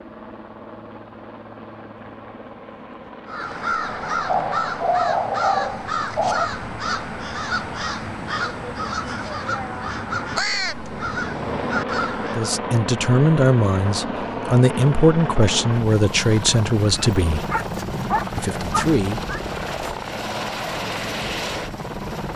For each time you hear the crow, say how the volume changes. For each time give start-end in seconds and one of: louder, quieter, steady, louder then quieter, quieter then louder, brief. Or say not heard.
3.2-12.5 steady.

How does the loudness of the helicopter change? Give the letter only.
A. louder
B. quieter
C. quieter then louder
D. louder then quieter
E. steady
A.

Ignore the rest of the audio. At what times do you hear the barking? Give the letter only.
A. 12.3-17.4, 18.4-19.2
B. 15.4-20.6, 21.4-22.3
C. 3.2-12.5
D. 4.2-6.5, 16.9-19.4
D.